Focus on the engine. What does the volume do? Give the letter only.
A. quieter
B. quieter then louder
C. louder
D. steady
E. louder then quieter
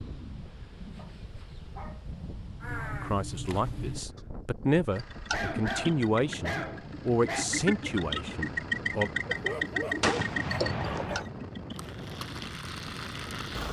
E.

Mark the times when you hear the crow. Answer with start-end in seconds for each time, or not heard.
2.6-4.2.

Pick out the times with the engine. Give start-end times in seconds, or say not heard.
4.9-13.6.